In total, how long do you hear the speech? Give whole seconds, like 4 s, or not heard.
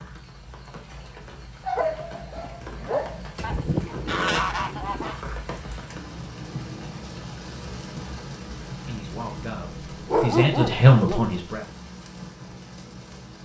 3 s.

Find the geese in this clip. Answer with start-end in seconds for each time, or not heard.
3.4-5.2.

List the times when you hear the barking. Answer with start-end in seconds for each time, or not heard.
1.6-3.5, 10.1-11.3.